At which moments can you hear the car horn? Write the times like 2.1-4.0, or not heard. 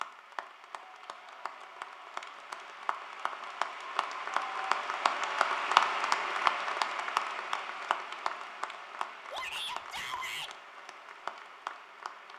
not heard.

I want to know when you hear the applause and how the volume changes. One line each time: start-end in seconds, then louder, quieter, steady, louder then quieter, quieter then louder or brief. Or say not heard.
0.0-12.3 louder then quieter.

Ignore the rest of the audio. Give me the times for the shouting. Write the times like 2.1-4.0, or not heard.
9.3-10.5.